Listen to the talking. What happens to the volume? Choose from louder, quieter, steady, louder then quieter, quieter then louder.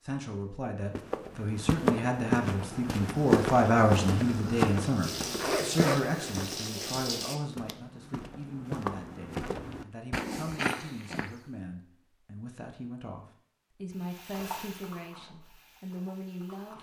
quieter.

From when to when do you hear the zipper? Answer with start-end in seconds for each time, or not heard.
5.3-6.9.